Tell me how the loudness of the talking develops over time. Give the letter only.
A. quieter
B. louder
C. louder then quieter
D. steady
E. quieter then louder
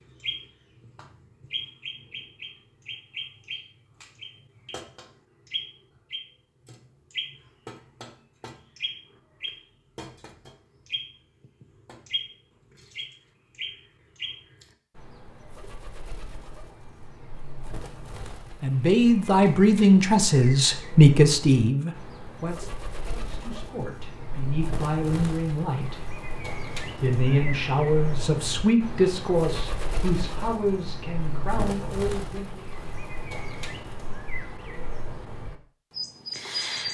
A.